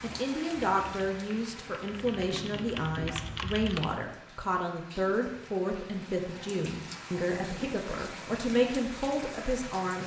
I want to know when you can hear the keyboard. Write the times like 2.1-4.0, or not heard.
0.0-4.0.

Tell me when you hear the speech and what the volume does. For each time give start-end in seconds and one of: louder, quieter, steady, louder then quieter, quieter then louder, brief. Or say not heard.
0.0-10.0 steady.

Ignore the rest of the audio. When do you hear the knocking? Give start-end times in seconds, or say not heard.
2.3-3.1.